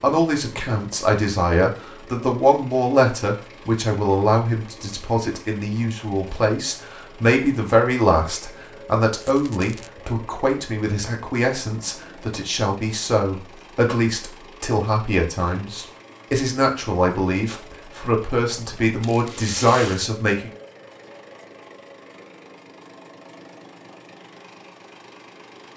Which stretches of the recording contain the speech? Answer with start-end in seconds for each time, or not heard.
0.0-20.5.